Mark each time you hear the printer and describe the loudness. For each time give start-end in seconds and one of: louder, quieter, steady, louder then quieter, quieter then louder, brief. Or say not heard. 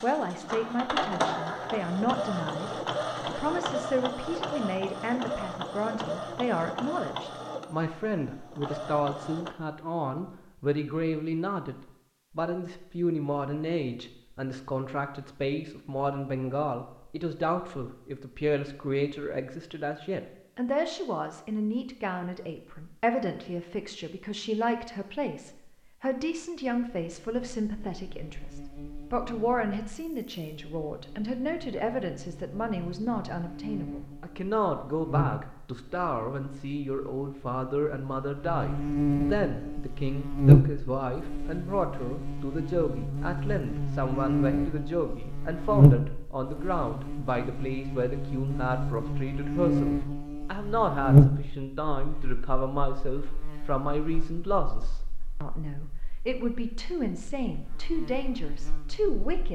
0.0-9.6 quieter.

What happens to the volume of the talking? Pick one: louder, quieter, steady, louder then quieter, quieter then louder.
steady.